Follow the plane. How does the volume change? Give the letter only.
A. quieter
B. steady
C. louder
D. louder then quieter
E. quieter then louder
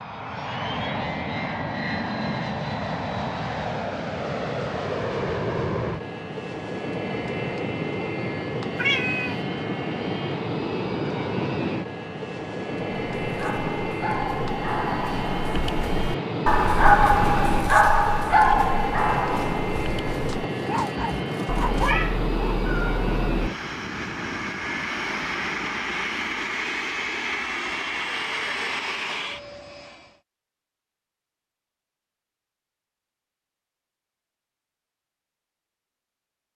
B.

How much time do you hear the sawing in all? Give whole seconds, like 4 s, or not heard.
3 s.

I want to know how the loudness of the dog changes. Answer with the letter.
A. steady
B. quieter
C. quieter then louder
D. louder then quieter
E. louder
D.